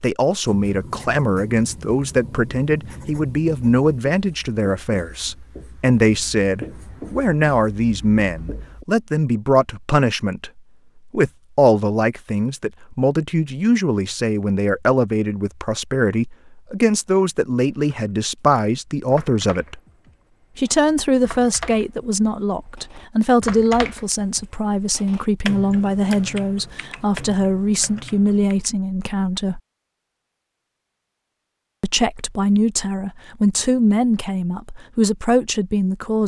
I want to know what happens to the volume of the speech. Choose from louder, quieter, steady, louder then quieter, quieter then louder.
steady.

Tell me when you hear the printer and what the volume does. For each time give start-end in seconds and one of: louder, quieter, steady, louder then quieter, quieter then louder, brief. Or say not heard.
not heard.